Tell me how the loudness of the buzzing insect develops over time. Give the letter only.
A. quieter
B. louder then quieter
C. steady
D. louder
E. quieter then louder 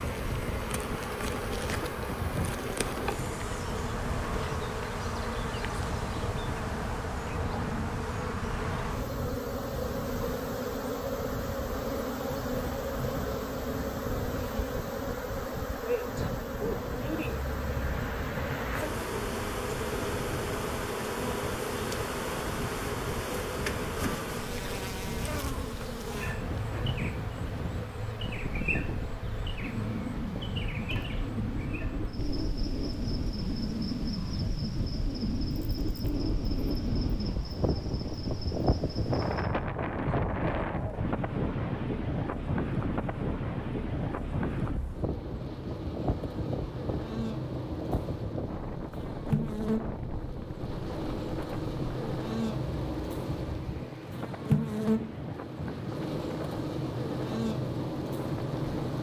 E.